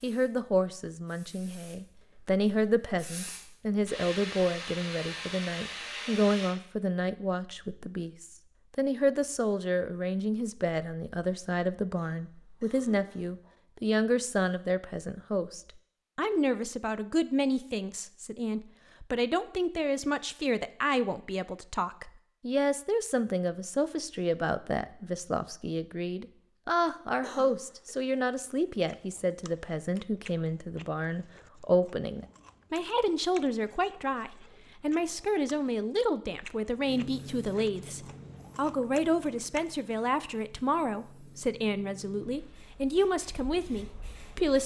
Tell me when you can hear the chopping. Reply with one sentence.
The chopping can't be heard in this clip.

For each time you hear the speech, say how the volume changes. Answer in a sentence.
The speech can be heard from 0.0 to 44.6 s, at a steady volume.